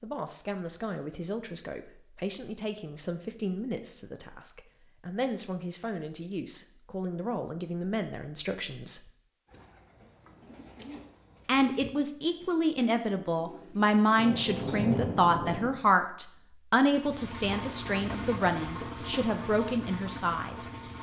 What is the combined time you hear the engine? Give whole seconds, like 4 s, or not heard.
4 s.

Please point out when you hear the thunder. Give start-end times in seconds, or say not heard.
14.2-15.7.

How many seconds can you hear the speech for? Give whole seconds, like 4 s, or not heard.
18 s.